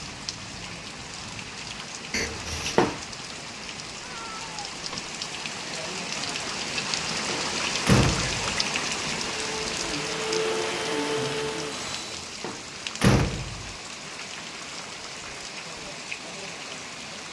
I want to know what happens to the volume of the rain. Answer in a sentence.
The loudness of the rain goes up, then down.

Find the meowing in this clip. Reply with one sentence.
The meowing can be heard from 4.0 to 5.1 s.